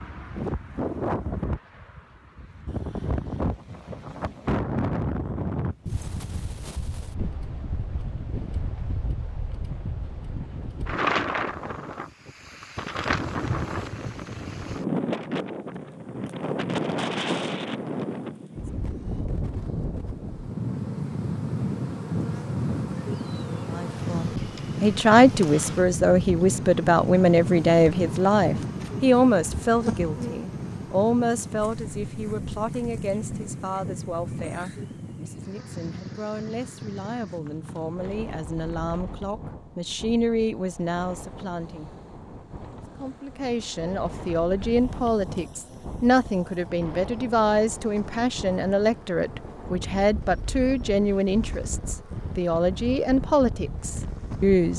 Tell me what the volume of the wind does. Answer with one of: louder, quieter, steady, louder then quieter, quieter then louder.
quieter.